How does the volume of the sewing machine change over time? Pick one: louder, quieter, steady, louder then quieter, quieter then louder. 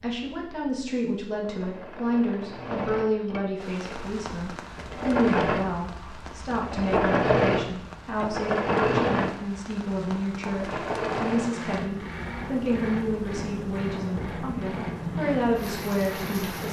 louder then quieter.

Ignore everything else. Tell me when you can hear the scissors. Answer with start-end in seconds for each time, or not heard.
not heard.